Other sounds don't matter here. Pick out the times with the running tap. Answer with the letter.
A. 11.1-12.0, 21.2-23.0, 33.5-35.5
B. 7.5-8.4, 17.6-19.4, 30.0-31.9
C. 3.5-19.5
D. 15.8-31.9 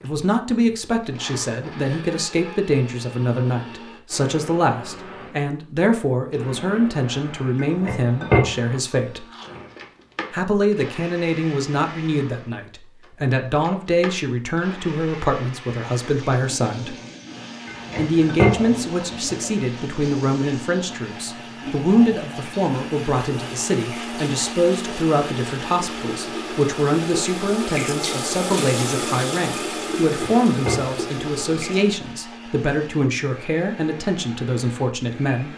D.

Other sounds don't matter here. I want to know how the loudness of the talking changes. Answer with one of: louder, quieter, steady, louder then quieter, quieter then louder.
steady.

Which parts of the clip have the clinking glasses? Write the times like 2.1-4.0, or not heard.
7.5-8.4, 17.6-19.4, 30.0-31.9.